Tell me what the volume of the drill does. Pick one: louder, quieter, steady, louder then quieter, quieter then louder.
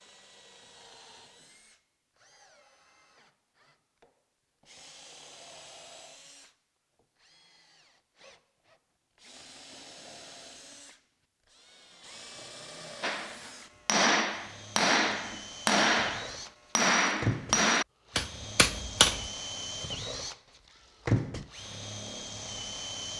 louder.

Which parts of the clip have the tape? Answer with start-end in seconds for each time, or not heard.
not heard.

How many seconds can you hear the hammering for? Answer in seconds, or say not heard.
6 s.